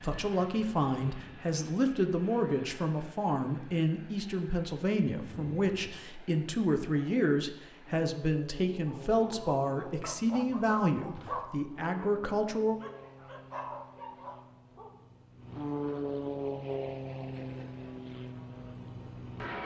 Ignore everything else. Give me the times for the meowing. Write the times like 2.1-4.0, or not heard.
not heard.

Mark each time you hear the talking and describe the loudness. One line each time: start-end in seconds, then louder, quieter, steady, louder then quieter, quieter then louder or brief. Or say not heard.
0.0-12.8 steady.